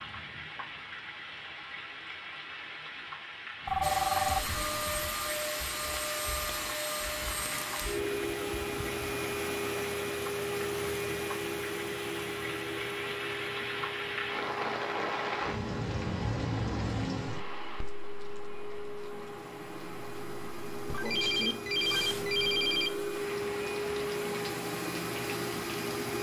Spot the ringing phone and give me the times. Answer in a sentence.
The ringing phone can be heard from 3.6 to 5.1 s and from 20.9 to 22.9 s.